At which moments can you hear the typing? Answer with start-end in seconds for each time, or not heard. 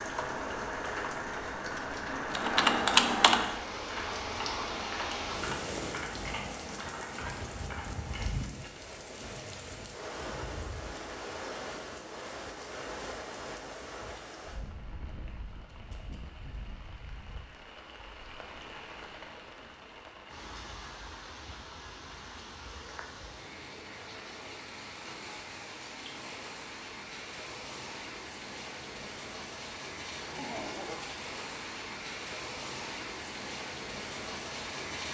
2.3-8.3.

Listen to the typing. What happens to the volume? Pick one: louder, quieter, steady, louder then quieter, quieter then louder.
quieter.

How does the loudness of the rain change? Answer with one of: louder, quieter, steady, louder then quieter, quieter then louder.
quieter then louder.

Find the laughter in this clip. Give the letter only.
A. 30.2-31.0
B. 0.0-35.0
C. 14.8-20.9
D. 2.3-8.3
A.